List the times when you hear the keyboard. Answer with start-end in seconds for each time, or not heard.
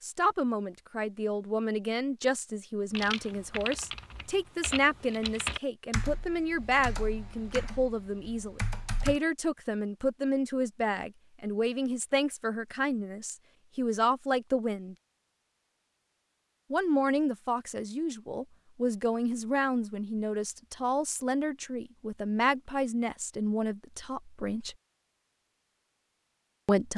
2.9-9.2.